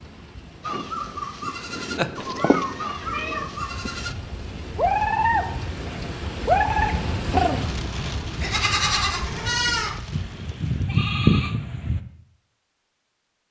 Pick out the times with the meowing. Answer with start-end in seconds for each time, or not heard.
1.9-4.0.